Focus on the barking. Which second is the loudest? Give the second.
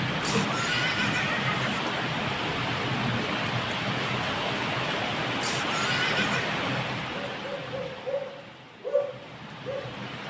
9 s.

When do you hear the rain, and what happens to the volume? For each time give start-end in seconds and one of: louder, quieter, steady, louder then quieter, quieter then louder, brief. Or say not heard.
0.0-10.2 quieter.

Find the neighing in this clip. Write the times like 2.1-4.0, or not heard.
0.2-1.8, 5.4-6.6.